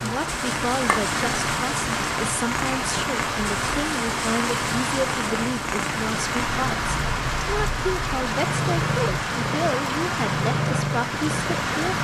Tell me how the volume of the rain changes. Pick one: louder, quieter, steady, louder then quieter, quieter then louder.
steady.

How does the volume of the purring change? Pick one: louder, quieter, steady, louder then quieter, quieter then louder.
steady.